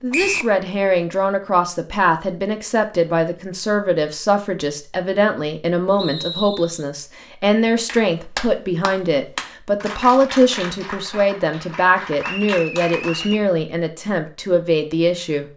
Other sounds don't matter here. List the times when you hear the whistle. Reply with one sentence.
You can hear the whistle from 0.1 to 0.6 s, from 6.0 to 6.8 s and from 12.2 to 13.5 s.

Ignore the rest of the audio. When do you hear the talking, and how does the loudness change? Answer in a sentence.
You can hear the talking from 0.0 to 15.5 s, at a steady volume.